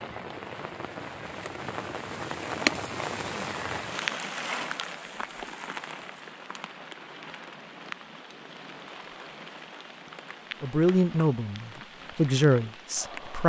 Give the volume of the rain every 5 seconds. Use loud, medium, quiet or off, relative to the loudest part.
loud, medium, medium.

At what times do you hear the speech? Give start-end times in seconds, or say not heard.
10.6-13.4.